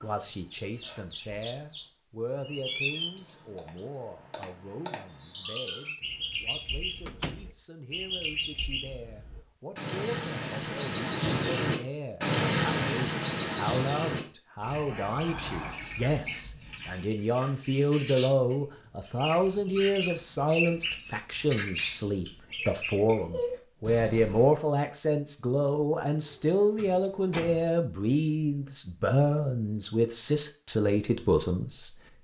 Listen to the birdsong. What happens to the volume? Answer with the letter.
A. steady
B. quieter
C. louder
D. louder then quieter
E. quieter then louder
D.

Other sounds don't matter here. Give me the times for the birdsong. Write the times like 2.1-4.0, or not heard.
0.0-24.5.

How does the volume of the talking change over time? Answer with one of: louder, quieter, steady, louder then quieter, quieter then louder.
louder.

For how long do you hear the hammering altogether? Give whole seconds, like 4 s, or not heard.
not heard.